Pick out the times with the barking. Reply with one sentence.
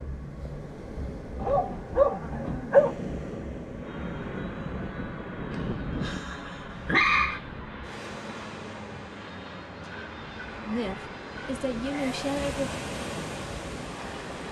You can hear the barking from 1.4 to 3.0 s, from 5.5 to 7.4 s and from 9.8 to 12.3 s.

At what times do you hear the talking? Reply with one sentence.
You can hear the talking from 10.6 to 12.7 s.